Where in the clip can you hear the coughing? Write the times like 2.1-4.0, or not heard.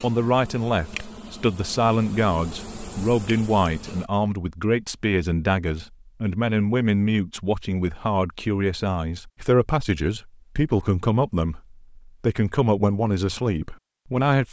not heard.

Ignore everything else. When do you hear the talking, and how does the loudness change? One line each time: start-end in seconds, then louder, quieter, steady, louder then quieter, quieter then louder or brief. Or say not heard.
0.0-14.4 steady.